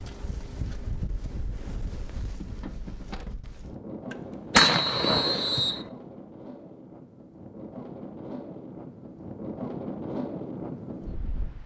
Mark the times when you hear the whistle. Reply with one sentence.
You can hear the whistle from 4.5 to 5.8 s.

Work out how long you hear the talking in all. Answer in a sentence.
You can't hear the talking here.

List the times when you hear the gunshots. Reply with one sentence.
The gunshots can be heard from 4.1 to 5.9 s.